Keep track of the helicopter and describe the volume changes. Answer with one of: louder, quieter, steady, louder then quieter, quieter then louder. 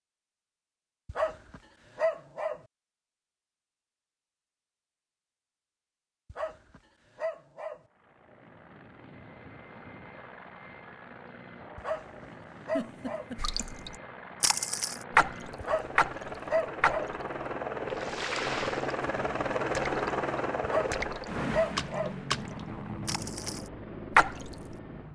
louder then quieter.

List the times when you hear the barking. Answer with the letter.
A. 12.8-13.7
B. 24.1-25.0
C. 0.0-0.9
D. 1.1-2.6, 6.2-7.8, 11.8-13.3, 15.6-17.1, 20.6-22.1
D.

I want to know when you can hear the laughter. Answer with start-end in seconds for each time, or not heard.
12.8-13.7.